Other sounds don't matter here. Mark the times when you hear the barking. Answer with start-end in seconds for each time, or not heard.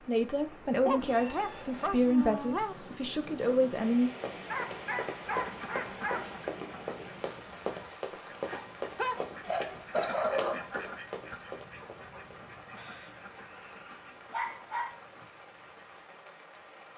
0.8-2.8, 4.5-6.5, 8.5-10.7, 12.8-14.9.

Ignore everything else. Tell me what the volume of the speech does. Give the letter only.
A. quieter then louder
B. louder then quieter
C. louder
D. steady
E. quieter
A.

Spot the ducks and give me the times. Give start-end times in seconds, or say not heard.
5.3-16.0.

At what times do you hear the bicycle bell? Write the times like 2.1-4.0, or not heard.
not heard.